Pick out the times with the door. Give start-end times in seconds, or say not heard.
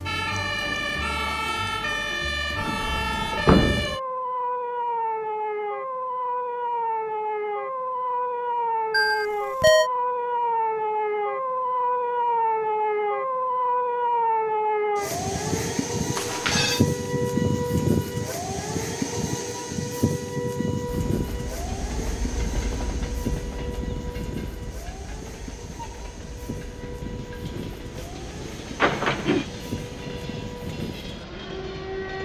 2.5-4.0, 28.8-29.5.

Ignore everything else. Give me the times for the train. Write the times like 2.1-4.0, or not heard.
20.9-32.1.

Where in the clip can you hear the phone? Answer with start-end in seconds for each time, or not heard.
8.9-9.9, 16.1-16.8.